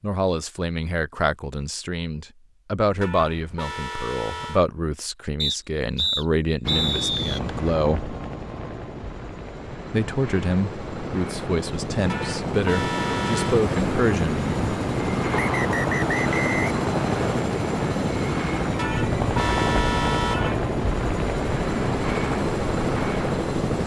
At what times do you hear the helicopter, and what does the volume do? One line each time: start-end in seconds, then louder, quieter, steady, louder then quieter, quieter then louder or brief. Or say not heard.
6.6-23.8 louder.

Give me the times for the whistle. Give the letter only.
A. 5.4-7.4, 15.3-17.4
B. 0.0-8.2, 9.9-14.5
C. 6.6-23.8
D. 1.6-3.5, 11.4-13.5
A.